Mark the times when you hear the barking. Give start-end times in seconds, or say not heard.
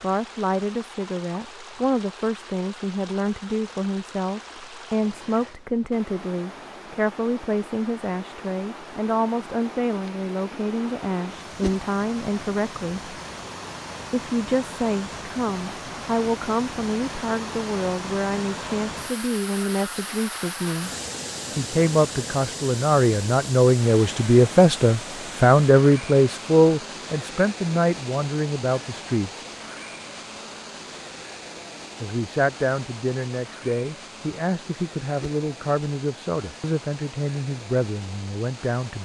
not heard.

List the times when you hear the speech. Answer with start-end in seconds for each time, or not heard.
0.0-13.2, 14.1-20.9, 21.6-29.4, 32.0-38.9.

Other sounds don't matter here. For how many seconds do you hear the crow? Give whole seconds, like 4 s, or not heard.
not heard.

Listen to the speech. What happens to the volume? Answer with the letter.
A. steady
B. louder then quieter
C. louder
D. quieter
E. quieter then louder
B.